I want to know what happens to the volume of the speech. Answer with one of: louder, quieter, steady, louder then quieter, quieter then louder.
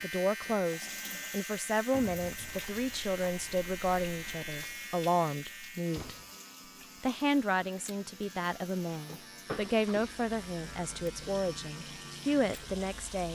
steady.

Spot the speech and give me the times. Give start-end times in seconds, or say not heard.
0.0-6.2, 7.0-13.3.